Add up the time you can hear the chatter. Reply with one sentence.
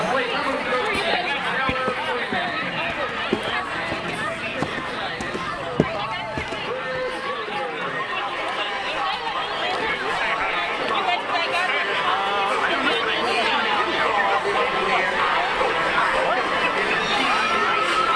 You can hear the chatter for 18 seconds altogether.